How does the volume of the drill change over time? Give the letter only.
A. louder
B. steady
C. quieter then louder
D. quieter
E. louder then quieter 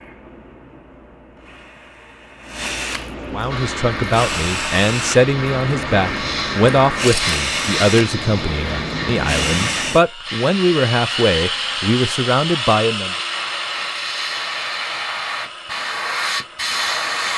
E.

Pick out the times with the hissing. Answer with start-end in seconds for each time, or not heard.
3.5-17.3.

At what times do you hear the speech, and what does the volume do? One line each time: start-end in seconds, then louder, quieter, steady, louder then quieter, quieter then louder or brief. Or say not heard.
3.3-13.2 steady.